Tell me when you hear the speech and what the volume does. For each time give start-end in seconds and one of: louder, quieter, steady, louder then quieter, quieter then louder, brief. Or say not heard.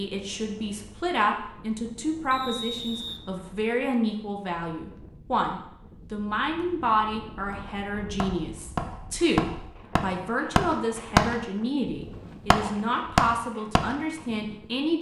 0.0-14.9 steady.